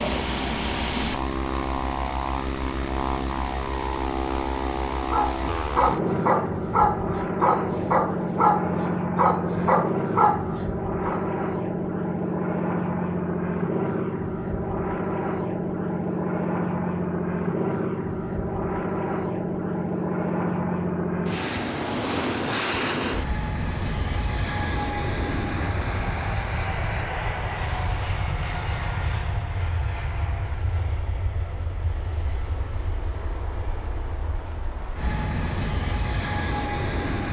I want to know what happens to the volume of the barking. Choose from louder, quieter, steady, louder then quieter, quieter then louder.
steady.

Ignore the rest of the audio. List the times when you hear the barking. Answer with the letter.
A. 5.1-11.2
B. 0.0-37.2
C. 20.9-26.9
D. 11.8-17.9
A.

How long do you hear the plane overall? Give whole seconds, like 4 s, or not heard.
37 s.